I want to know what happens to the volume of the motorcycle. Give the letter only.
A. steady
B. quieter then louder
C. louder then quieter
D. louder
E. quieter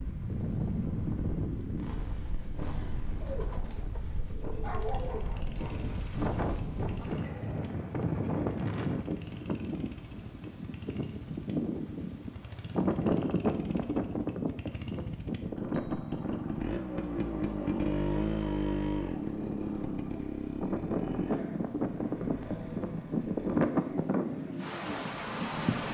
C.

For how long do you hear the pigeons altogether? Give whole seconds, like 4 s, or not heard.
3 s.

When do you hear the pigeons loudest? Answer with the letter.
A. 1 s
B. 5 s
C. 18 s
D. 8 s
B.